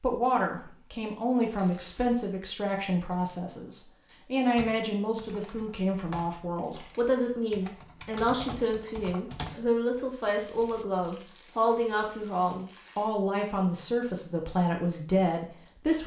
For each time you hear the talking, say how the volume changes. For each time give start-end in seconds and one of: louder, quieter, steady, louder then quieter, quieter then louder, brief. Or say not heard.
0.0-16.0 steady.